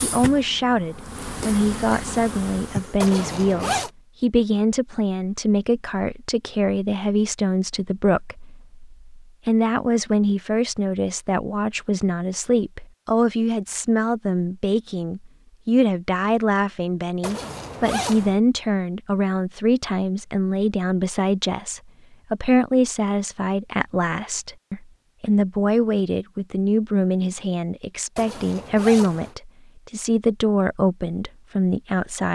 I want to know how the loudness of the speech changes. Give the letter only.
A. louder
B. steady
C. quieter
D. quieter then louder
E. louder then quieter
B.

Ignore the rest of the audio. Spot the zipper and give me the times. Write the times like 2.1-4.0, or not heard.
3.0-3.9, 17.2-18.4, 28.1-29.4.